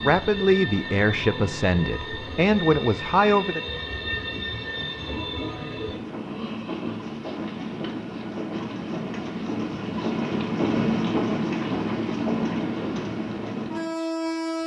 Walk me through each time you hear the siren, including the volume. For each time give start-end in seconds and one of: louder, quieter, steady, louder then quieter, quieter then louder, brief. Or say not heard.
not heard.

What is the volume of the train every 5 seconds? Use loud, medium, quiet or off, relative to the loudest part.
medium, medium, loud.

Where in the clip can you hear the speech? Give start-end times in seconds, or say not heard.
0.0-3.6.